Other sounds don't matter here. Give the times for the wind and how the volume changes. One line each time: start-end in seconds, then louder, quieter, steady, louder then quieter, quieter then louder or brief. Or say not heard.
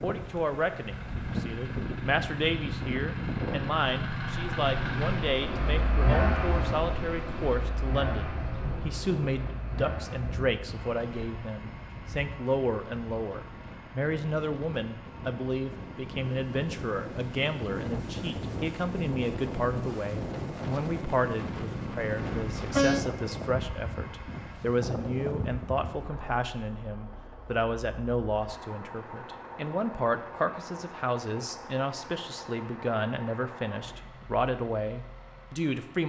0.0-26.1 quieter then louder.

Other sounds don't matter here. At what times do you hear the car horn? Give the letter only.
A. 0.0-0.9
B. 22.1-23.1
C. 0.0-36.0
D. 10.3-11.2
B.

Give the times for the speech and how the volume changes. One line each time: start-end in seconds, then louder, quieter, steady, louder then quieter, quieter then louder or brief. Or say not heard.
0.0-36.0 steady.